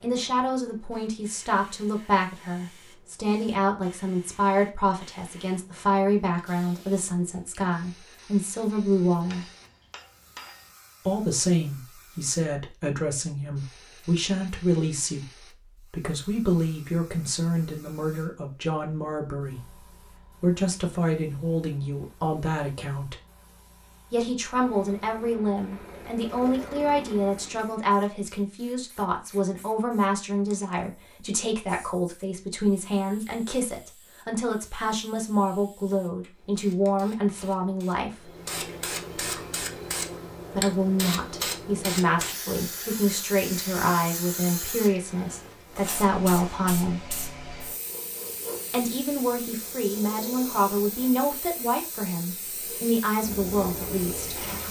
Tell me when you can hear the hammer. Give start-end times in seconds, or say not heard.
9.3-10.8.